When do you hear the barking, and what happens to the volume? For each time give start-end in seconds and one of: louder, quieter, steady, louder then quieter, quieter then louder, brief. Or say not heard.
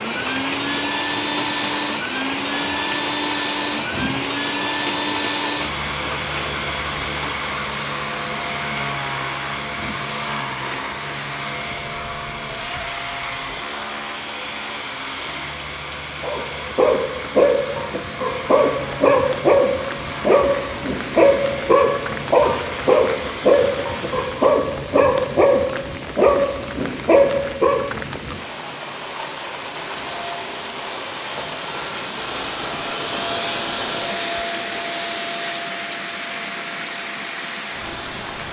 16.2-27.9 steady.